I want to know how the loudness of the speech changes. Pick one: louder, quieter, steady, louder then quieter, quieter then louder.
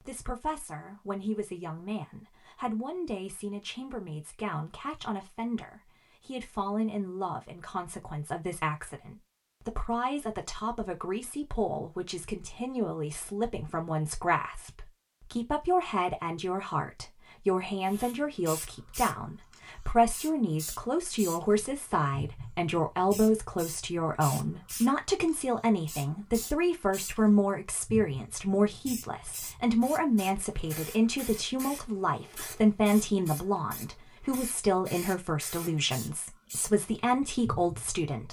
louder.